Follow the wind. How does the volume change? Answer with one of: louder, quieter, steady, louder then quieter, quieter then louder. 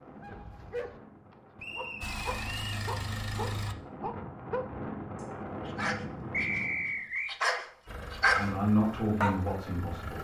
louder.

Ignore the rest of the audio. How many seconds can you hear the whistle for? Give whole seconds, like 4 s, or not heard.
2 s.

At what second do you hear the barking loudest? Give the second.
8 s.